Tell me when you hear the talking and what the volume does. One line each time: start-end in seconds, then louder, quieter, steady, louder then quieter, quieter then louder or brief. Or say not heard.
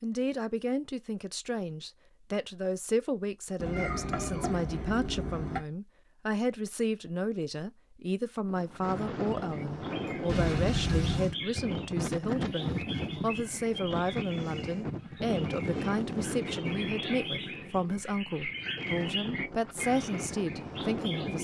0.0-21.4 steady.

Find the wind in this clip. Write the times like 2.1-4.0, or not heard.
8.4-21.4.